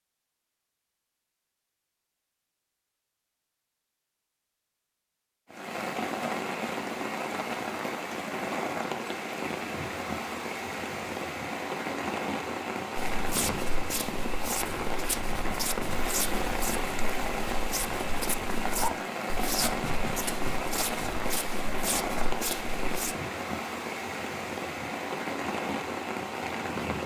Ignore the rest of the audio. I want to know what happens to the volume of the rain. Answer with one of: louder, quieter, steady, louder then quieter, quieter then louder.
steady.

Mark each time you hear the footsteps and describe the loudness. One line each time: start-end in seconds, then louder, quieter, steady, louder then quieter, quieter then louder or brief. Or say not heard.
12.9-23.1 steady.